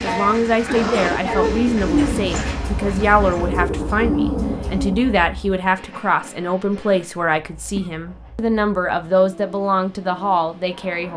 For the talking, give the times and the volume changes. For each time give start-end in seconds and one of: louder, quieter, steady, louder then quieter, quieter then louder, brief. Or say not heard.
0.0-11.1 steady.